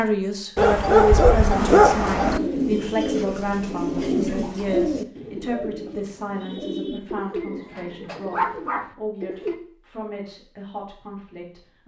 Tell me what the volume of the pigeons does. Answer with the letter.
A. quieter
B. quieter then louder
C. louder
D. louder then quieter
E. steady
A.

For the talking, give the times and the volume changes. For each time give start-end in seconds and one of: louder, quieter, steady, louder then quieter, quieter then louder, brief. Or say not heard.
0.0-11.8 quieter.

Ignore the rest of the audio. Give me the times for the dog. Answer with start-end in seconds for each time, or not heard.
0.6-2.4, 8.3-8.8.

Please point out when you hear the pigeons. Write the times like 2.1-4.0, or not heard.
1.5-9.6.